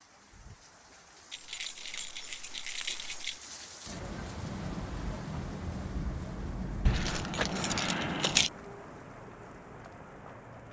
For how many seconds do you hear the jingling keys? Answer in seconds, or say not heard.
4 s.